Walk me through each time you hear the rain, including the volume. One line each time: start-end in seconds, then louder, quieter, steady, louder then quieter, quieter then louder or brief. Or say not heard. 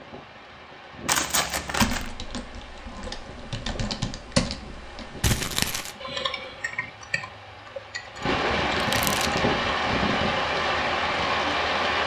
0.0-12.0 louder.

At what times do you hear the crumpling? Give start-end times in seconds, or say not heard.
1.1-2.1, 5.2-6.0, 8.8-9.4.